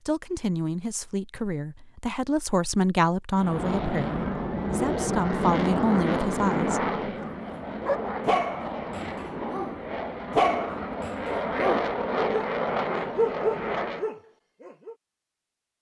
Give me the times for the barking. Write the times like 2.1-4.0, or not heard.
7.2-14.9.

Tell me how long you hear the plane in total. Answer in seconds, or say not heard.
11 s.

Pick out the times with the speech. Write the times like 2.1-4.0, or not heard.
0.1-6.8.